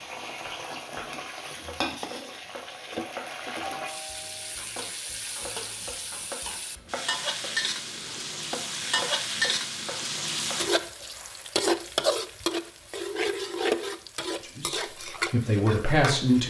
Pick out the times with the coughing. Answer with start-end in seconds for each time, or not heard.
not heard.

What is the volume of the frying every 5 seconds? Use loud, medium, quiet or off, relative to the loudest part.
medium, loud, loud, medium.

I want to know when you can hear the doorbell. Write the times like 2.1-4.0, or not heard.
3.8-4.6.